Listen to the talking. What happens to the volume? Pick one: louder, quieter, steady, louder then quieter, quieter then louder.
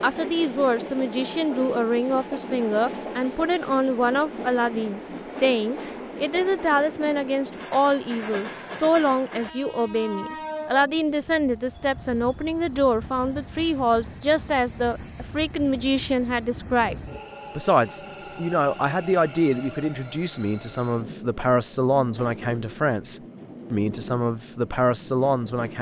steady.